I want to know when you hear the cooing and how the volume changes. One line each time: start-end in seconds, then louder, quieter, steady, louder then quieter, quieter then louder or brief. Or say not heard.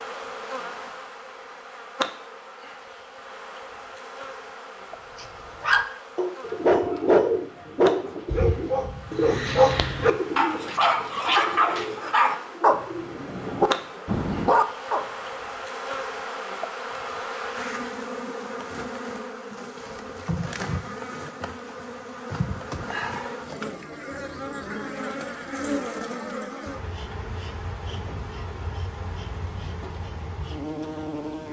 6.4-14.1 quieter.